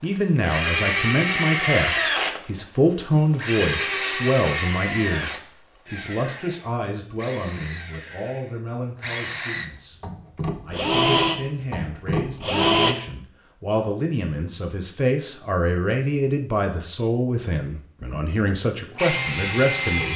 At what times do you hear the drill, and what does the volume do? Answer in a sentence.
The drill can be heard from 0.3 to 12.9 s, getting quieter then louder; and briefly from 18.9 to 20.1 s.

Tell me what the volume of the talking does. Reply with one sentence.
The loudness of the talking goes down, then up.